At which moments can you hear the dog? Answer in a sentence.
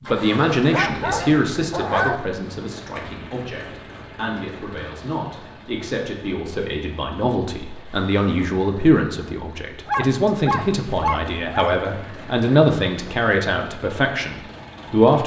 You can hear the dog from 0.3 to 2.2 s and from 9.8 to 11.8 s.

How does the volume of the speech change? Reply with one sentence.
The loudness of the speech goes down, then up.